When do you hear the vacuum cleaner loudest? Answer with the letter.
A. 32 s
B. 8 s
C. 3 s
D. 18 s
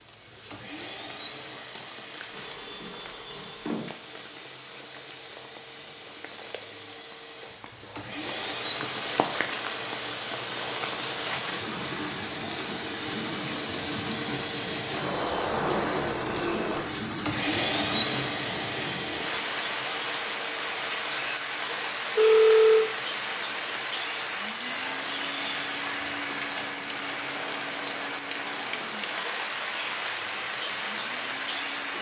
D.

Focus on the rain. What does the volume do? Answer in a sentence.
The volume of the rain goes up.